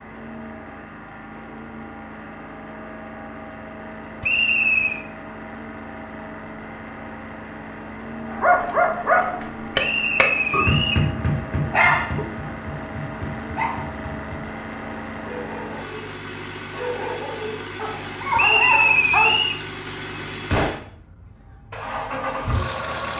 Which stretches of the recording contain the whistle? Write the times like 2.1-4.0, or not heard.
4.2-5.0, 9.8-11.1, 18.4-19.6.